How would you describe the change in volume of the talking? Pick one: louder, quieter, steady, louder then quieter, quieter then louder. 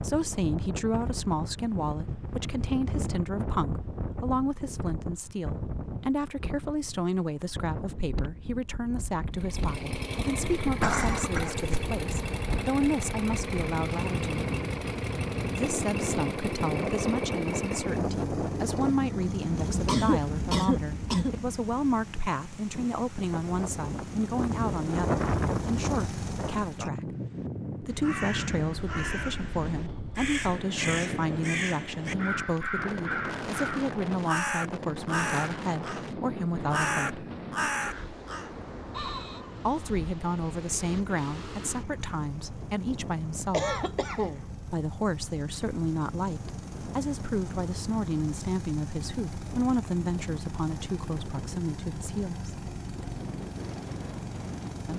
steady.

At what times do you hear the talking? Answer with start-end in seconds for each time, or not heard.
0.0-14.3, 15.6-27.1, 27.8-37.2, 39.6-43.8, 44.6-52.6.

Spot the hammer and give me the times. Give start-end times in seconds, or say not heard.
not heard.